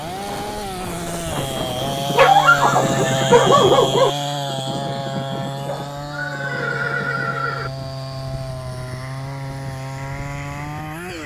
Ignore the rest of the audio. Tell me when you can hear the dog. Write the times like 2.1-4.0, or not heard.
2.1-4.1.